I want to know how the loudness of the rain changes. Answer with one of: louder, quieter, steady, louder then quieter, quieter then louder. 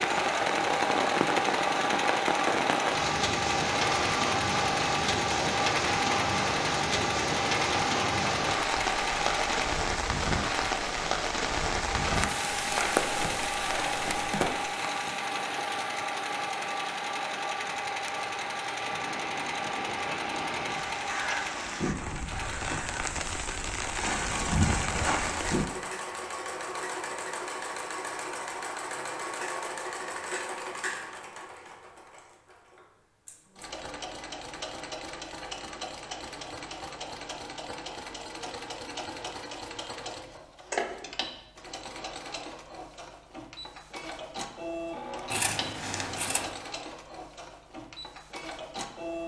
quieter then louder.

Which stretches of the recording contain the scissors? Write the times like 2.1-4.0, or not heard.
12.6-14.3, 45.3-46.5.